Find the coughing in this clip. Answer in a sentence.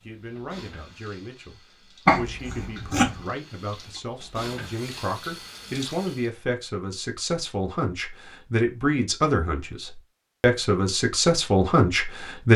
You can hear the coughing from 2.0 to 3.2 s.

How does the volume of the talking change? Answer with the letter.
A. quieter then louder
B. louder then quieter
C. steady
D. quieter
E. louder
E.